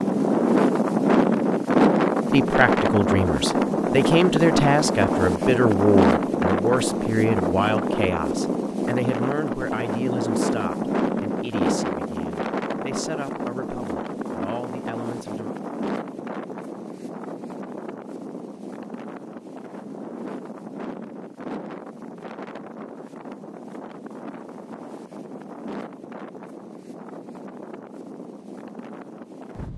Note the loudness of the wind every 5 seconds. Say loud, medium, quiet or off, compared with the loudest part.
loud, loud, medium, quiet, quiet, quiet.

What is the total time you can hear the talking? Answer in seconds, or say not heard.
13 s.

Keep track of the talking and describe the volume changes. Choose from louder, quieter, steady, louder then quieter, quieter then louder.
quieter.